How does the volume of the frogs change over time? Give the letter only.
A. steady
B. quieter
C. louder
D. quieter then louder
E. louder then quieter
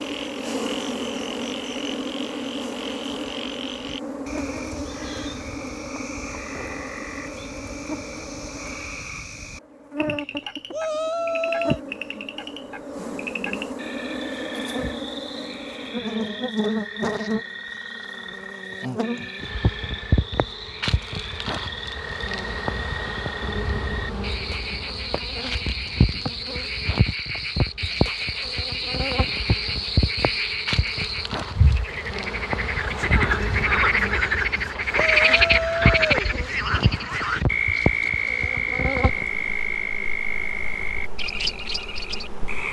C.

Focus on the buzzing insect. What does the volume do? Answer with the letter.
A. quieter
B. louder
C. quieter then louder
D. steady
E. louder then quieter
D.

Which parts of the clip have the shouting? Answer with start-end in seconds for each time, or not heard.
10.7-11.8, 35.0-36.3.